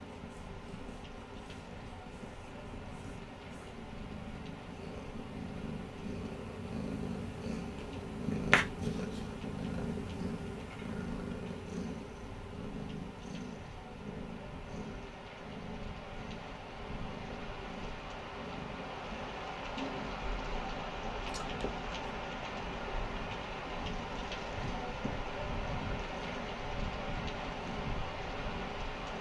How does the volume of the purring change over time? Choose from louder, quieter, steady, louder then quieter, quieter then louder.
louder then quieter.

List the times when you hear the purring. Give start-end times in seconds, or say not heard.
0.0-29.1.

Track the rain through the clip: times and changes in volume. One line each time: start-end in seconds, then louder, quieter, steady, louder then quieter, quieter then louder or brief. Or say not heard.
0.0-29.1 louder.